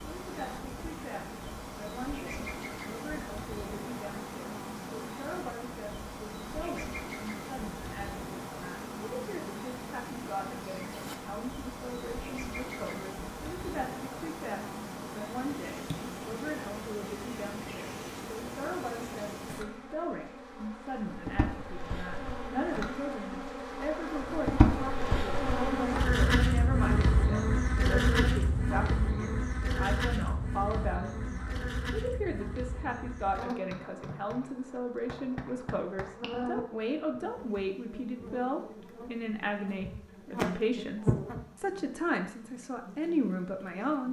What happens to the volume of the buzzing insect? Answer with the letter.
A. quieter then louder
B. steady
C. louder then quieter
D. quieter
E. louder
C.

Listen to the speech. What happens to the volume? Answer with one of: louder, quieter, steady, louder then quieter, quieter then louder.
louder.